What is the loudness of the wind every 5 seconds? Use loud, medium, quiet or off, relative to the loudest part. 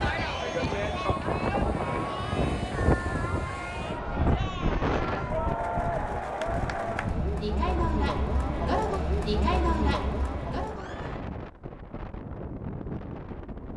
loud, medium, medium.